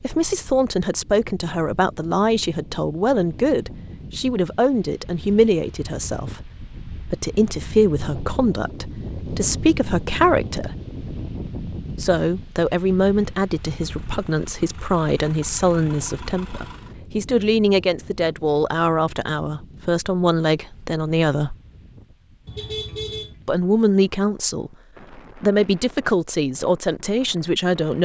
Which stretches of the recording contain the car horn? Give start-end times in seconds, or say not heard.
22.4-23.4.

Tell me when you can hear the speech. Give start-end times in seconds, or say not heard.
0.0-10.7, 11.9-21.6, 23.4-28.0.